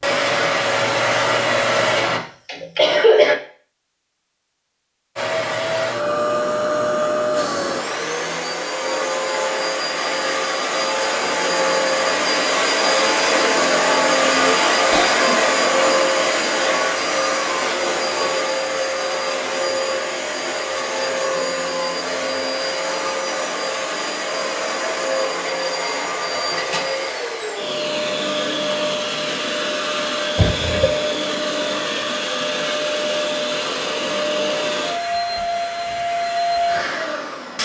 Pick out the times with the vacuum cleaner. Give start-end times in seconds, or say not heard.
0.0-2.2, 5.2-37.6.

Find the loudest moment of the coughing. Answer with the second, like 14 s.
3 s.